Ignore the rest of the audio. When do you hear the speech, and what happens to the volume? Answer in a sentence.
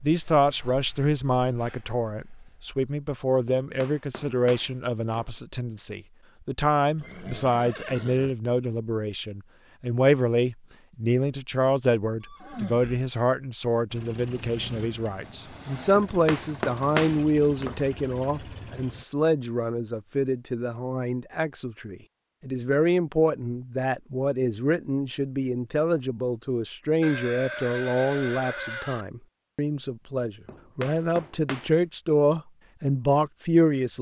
The speech can be heard from 0.0 to 33.9 s, at a steady volume.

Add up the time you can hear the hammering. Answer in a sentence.
The hammering can be heard for 5 seconds in total.